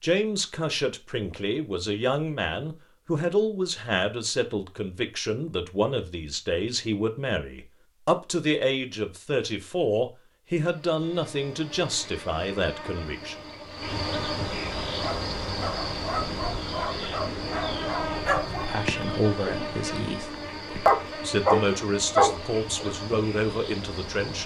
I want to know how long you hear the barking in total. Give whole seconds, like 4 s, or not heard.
8 s.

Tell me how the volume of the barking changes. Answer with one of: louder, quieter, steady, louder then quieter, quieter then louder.
louder.